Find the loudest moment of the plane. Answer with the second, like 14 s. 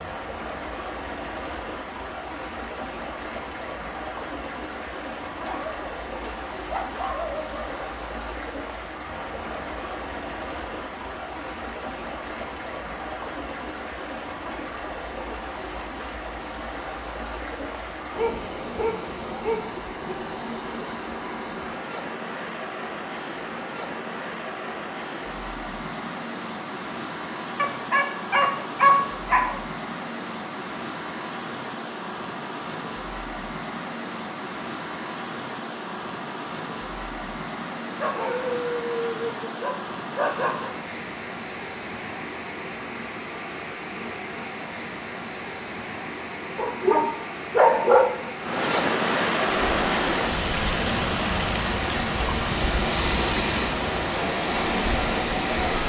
53 s.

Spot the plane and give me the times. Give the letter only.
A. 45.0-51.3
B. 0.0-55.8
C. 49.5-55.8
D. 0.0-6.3
C.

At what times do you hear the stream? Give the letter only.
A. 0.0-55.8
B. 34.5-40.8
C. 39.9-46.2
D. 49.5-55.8
A.